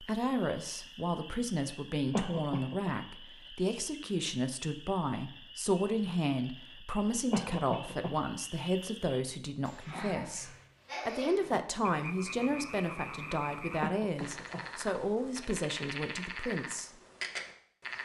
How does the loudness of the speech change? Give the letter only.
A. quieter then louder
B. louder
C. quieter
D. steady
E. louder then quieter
D.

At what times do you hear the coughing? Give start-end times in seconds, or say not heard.
2.1-3.0, 7.3-8.2, 13.8-14.7.